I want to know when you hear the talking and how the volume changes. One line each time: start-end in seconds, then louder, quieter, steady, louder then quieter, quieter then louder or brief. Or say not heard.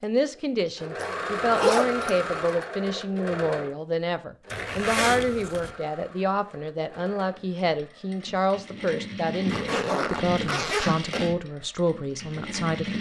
0.0-12.9 steady.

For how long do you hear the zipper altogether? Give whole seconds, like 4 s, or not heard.
5 s.